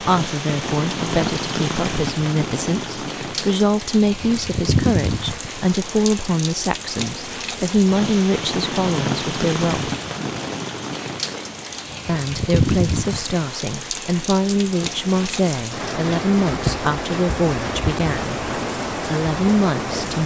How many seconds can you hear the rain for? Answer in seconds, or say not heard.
20 s.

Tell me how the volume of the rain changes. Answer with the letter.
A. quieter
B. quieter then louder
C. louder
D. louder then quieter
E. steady
E.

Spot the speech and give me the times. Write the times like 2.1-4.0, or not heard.
0.0-9.9, 12.1-20.2.